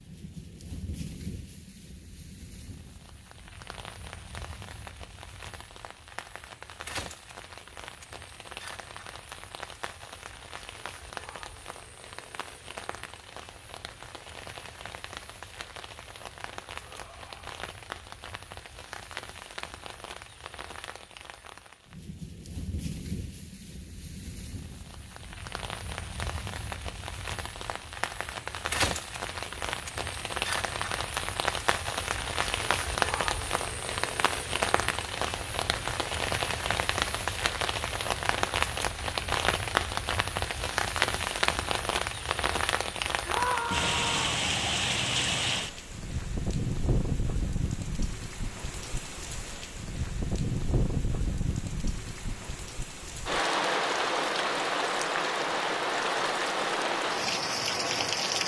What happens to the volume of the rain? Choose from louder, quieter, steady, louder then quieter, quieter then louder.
louder.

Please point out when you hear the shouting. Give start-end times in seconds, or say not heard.
16.8-17.6, 43.2-44.4.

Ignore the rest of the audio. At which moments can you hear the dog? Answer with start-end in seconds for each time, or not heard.
not heard.